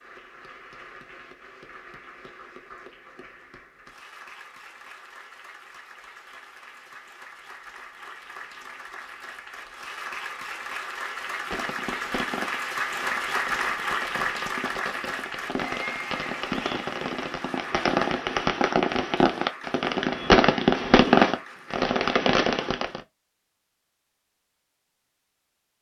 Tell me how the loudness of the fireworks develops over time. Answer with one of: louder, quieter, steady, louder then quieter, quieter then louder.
louder.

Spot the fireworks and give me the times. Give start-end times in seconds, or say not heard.
11.3-23.0.